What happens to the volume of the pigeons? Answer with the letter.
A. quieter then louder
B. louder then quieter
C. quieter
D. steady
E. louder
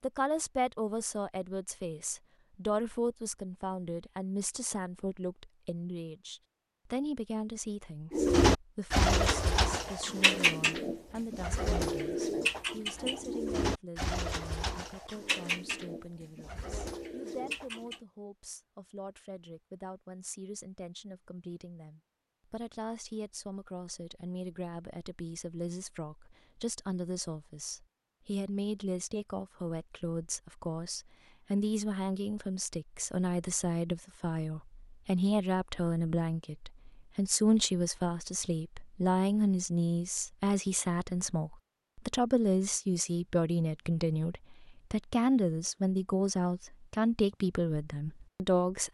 C.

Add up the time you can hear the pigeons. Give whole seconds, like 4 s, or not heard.
10 s.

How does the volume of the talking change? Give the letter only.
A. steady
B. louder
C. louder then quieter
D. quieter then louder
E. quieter
D.